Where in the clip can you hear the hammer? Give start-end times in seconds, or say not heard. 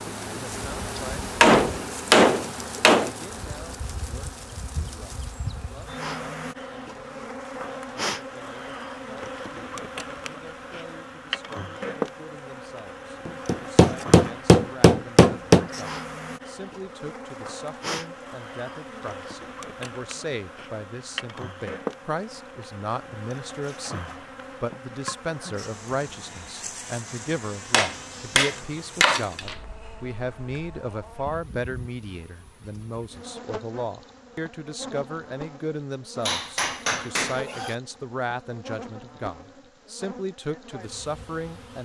1.4-3.1, 13.2-15.7, 27.7-29.6, 36.2-37.8.